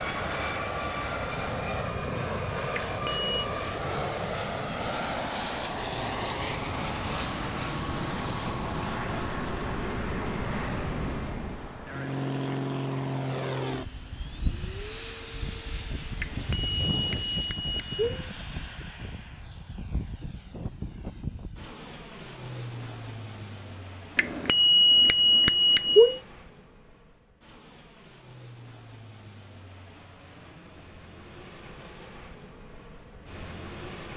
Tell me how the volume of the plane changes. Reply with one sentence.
The volume of the plane goes down.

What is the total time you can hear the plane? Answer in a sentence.
You can hear the plane for 34 seconds altogether.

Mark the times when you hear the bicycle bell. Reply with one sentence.
You can hear the bicycle bell from 2.9 to 3.3 s, from 16.2 to 18.3 s and from 24.1 to 26.2 s.